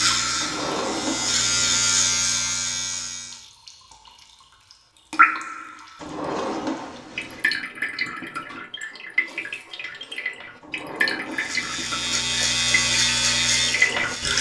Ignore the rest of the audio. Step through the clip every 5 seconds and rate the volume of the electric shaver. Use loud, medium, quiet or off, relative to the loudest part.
loud, off, loud.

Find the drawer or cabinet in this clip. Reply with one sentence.
The drawer or cabinet can be heard from 0.4 to 1.9 s, from 6.0 to 7.5 s and from 10.6 to 11.8 s.